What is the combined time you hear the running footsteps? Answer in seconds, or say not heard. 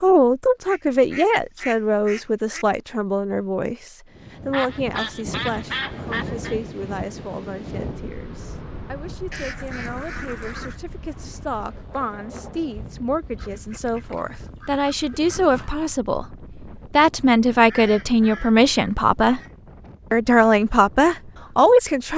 not heard.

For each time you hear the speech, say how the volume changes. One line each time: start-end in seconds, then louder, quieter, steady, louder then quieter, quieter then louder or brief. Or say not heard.
0.0-19.4 quieter then louder
20.1-22.1 brief.